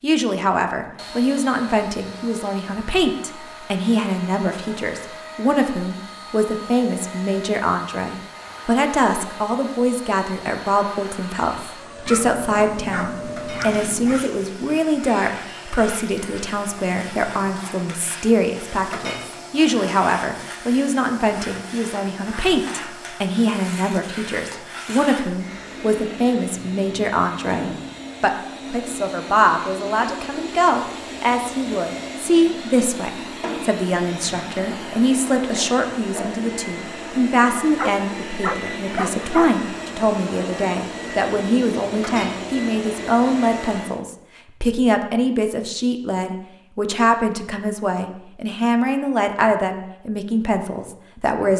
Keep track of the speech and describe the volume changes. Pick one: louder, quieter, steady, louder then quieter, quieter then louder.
steady.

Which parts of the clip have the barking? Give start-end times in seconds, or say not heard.
12.1-14.2, 37.8-39.5.